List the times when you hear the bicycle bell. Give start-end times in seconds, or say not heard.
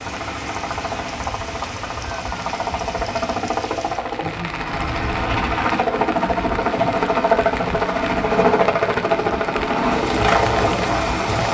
not heard.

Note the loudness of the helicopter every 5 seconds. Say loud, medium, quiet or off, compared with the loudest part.
medium, loud, loud.